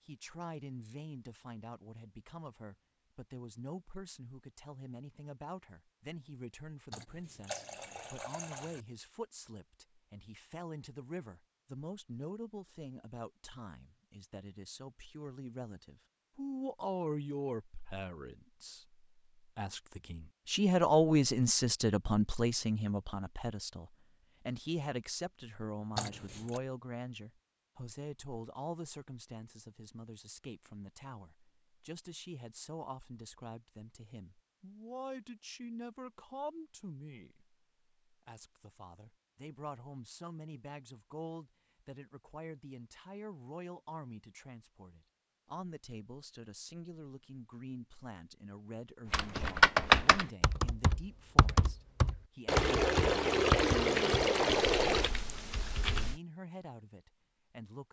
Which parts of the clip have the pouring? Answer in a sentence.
You can hear the pouring from 6.9 to 8.8 s, from 25.9 to 26.6 s and from 52.5 to 55.1 s.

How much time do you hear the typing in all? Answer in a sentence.
You can hear the typing for 7 seconds altogether.